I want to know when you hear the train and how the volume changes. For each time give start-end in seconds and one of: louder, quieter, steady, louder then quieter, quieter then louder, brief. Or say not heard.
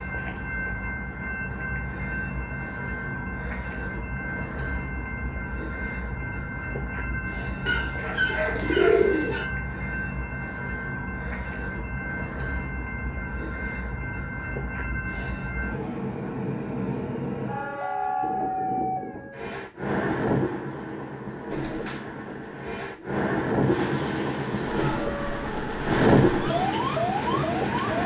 0.0-28.0 louder.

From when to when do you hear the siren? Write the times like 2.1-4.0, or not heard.
24.6-28.0.